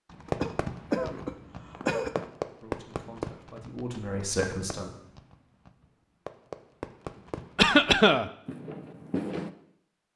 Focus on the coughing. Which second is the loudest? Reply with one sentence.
The loudest moment of the coughing is at 8 seconds.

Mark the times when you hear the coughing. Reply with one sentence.
You can hear the coughing from 0.2 to 2.3 s and from 7.5 to 8.3 s.